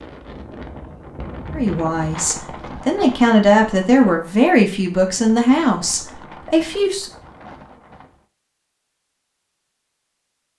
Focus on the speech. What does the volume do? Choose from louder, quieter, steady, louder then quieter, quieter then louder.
louder then quieter.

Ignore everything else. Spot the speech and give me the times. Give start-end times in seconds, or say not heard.
1.5-7.0.